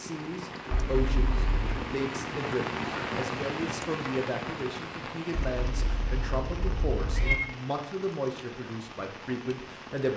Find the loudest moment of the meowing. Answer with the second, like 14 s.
7 s.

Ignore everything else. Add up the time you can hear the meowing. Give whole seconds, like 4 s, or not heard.
3 s.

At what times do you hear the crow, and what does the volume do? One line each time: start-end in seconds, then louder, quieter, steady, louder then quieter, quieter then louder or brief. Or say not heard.
not heard.